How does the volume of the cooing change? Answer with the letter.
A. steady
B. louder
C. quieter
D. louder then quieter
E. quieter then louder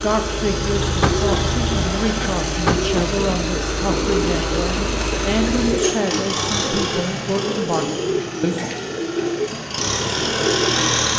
A.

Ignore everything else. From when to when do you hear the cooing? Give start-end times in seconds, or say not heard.
0.9-10.9.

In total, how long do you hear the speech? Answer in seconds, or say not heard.
9 s.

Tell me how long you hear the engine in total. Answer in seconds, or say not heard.
11 s.